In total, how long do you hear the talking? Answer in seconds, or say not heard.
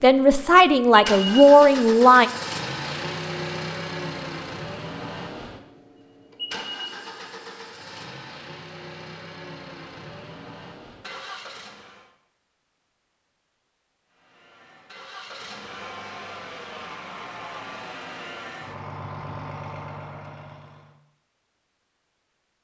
2 s.